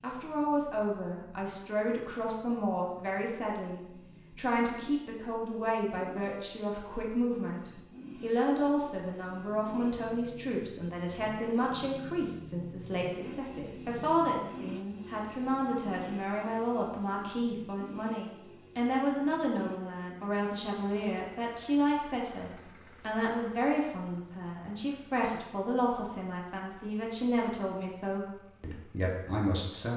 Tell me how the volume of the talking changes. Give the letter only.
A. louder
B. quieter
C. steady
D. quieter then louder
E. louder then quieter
C.